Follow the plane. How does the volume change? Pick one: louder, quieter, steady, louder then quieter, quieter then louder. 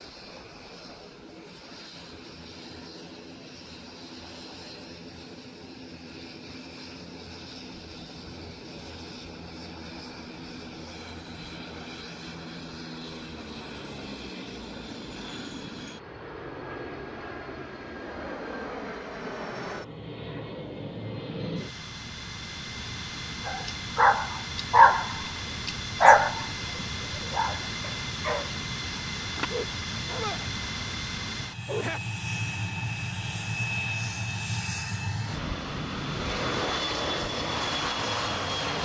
louder.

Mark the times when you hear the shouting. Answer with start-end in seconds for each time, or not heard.
not heard.